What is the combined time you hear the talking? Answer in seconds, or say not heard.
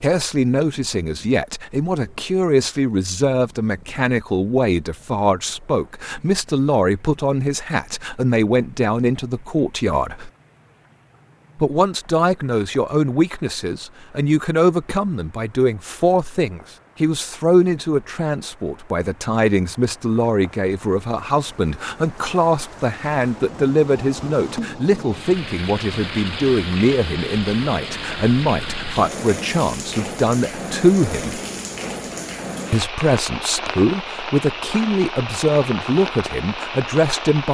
35 s.